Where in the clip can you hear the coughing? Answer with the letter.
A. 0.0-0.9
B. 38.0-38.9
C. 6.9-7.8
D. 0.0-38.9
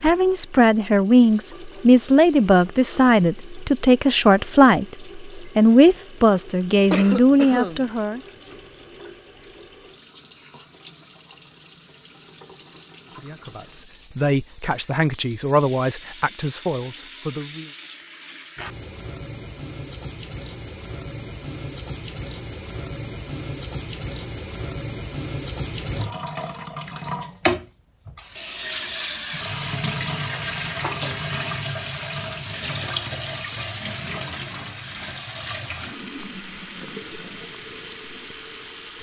C.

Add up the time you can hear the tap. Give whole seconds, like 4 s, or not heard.
39 s.